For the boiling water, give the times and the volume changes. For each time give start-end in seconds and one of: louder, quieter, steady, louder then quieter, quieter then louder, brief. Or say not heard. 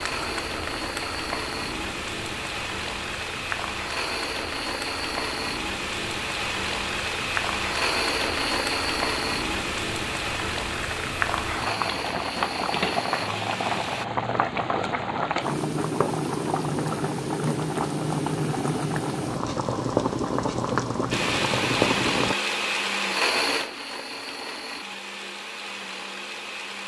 0.0-22.4 louder.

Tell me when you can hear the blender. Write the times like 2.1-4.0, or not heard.
0.0-14.1, 21.1-26.8.